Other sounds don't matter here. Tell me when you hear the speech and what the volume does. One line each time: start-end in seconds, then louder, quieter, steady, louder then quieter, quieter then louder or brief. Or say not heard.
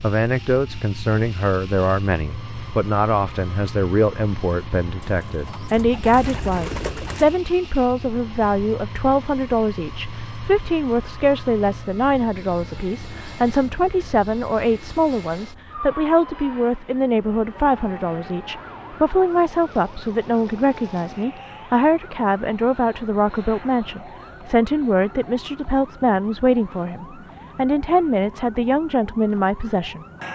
0.0-30.1 steady.